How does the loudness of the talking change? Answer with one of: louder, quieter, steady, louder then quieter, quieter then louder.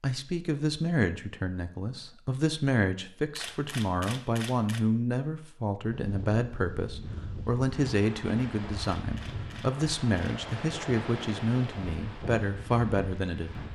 steady.